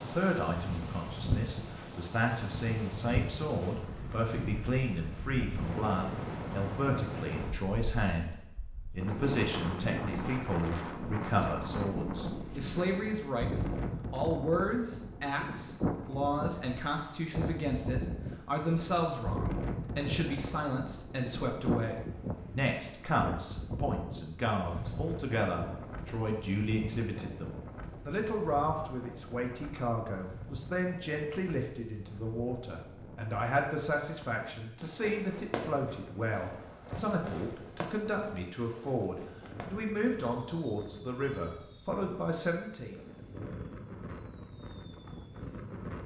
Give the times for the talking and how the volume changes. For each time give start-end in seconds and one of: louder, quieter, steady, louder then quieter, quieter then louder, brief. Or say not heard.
0.0-43.0 steady.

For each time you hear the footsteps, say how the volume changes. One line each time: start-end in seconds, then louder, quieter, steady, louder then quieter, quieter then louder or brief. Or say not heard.
not heard.